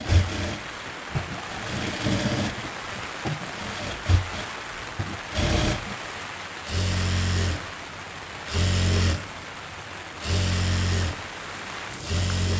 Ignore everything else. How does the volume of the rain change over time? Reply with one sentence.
The loudness of the rain stays about the same.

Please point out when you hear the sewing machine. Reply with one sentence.
The sewing machine can be heard from 0.0 to 12.5 s.